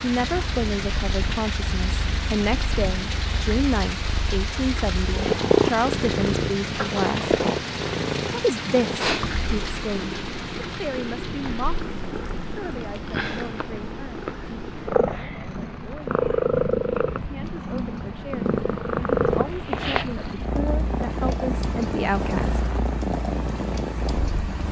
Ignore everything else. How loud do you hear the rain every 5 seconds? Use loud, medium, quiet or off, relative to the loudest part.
loud, loud, medium, medium, loud.